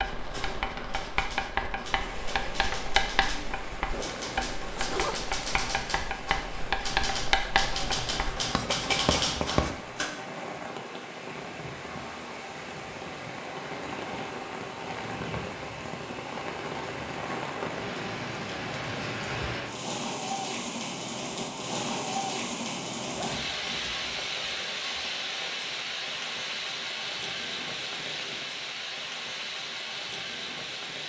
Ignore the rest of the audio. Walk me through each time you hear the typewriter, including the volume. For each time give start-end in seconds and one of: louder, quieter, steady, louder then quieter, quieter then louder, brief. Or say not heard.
0.2-10.1 louder.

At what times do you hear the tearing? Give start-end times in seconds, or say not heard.
not heard.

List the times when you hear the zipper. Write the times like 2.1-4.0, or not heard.
3.9-5.2, 23.1-24.3.